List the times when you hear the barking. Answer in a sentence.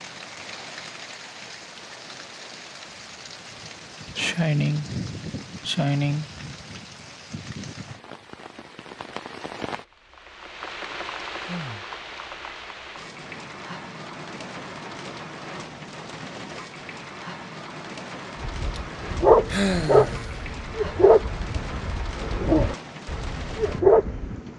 The barking can be heard from 18.4 to 24.4 s.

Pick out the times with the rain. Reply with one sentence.
The rain can be heard from 0.0 to 24.5 s.